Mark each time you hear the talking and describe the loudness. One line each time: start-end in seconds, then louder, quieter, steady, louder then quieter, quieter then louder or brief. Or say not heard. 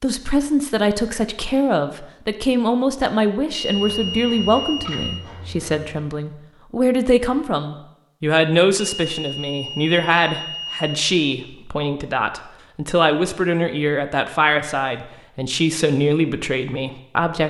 0.0-17.4 steady.